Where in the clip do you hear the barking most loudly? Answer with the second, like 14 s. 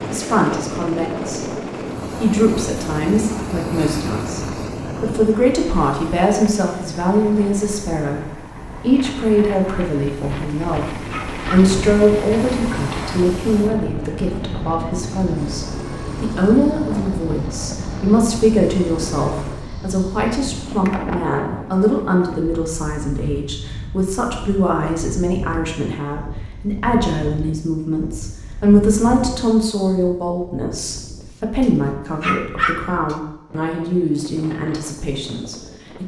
33 s.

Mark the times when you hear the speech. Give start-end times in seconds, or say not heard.
0.1-36.0.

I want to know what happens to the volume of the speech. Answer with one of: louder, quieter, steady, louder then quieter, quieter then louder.
steady.